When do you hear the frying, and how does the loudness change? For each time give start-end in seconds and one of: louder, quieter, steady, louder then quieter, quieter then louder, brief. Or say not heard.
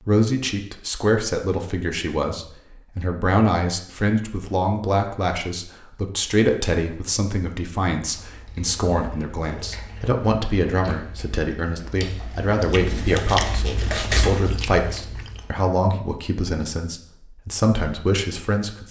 not heard.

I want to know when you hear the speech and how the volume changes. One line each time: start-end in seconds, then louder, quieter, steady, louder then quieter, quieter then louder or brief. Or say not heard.
0.1-18.8 steady.